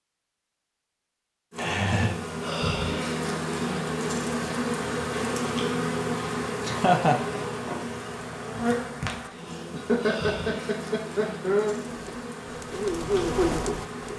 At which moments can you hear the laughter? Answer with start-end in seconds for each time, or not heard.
1.6-2.1, 6.7-7.2, 9.7-11.8.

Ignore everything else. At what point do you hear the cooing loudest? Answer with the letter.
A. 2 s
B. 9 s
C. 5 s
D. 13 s
D.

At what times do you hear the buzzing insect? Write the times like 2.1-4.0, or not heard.
1.5-14.1.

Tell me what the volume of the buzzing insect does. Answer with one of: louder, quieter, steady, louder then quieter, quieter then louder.
quieter.